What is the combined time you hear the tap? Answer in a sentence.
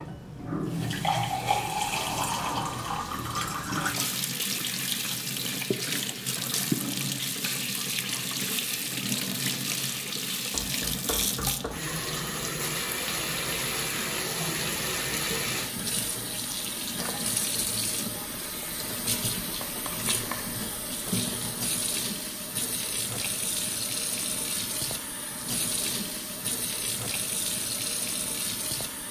The tap can be heard for 29 seconds in total.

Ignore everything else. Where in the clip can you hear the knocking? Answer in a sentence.
You can hear the knocking from 10.5 to 11.8 s and from 19.6 to 20.4 s.